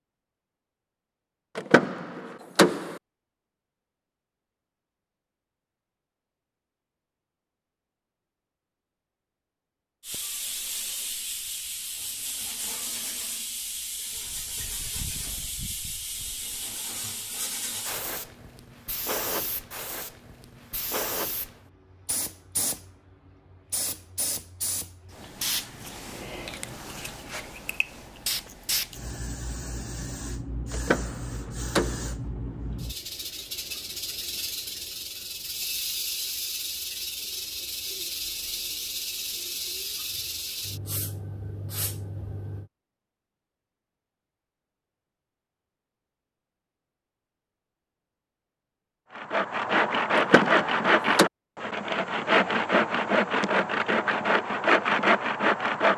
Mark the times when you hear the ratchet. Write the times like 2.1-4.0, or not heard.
not heard.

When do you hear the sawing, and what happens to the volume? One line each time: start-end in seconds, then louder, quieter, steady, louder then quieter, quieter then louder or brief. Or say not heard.
49.1-55.9 steady.